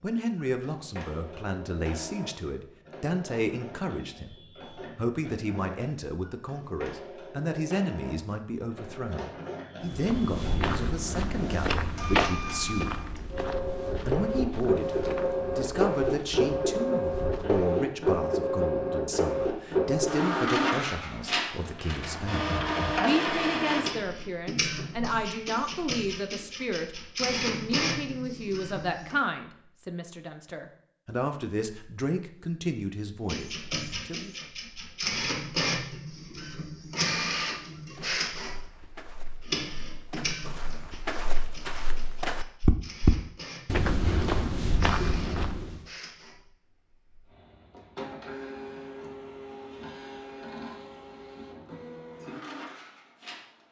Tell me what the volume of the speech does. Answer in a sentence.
The loudness of the speech stays about the same.